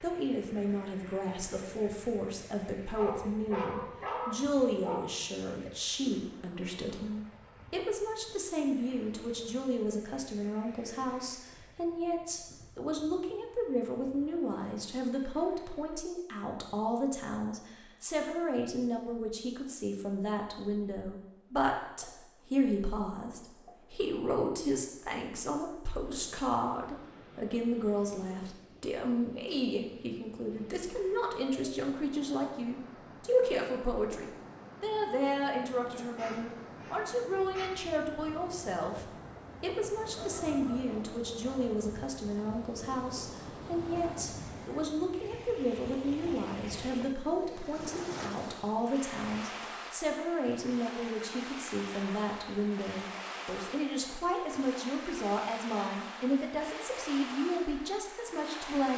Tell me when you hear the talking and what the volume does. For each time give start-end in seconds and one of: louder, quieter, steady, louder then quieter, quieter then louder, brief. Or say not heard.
0.0-58.9 steady.